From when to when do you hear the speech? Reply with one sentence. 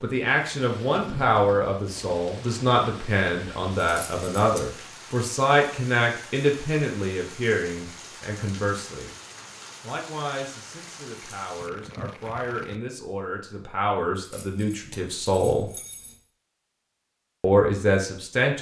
You can hear the speech from 0.0 to 9.2 s, from 9.8 to 15.7 s and from 17.4 to 18.5 s.